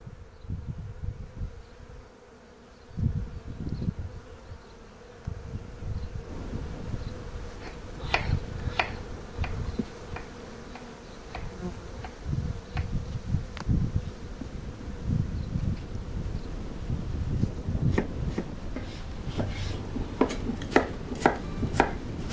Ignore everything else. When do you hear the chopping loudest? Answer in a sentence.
The loudest moment of the chopping is at 21 seconds.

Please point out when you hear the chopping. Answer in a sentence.
The chopping can be heard from 7.6 to 12.9 s and from 17.9 to 22.2 s.